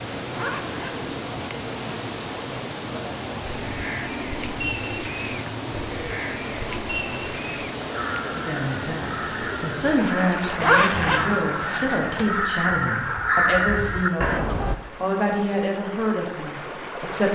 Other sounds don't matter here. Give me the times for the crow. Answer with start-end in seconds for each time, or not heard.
3.4-14.8.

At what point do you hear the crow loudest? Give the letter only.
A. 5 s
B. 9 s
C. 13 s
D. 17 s
C.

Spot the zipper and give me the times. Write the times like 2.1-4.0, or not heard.
0.3-1.1, 10.6-12.3.